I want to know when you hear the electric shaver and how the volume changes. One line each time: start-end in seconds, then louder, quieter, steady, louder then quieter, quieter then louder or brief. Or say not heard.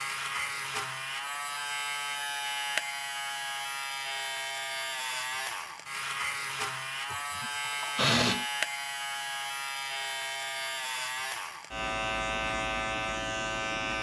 0.0-13.9 steady.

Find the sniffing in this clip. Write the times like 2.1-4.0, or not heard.
7.1-8.4.